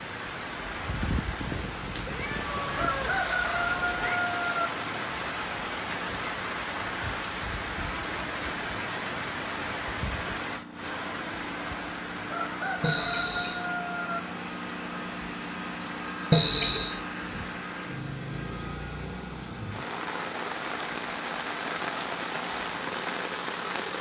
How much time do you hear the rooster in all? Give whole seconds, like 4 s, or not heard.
4 s.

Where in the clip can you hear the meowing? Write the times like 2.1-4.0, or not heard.
1.6-4.2, 12.8-13.6, 16.3-16.9.